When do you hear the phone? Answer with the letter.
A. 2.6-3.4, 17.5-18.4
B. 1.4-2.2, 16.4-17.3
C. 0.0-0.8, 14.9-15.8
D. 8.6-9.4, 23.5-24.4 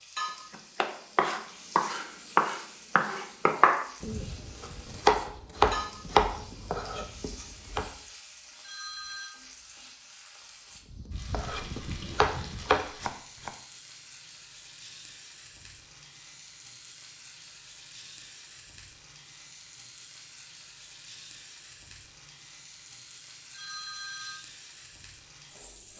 D.